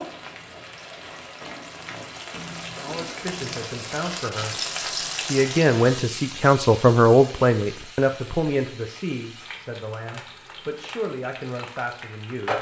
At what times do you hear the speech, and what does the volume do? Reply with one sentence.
You can hear the speech from 2.5 to 12.5 s, getting louder then quieter.